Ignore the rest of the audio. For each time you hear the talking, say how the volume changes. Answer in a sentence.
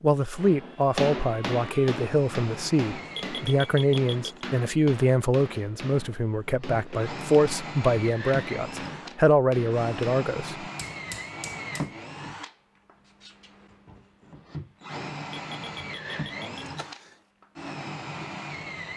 The talking can be heard from 0.0 to 10.7 s, at a steady volume.